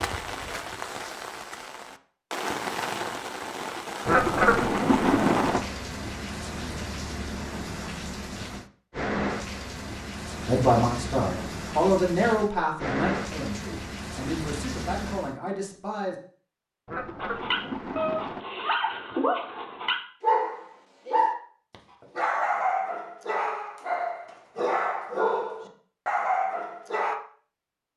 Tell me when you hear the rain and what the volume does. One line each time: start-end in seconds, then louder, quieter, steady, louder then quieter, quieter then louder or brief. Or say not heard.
0.0-15.3 steady.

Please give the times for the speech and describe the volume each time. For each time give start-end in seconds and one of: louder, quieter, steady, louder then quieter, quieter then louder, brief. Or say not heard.
10.4-16.1 quieter.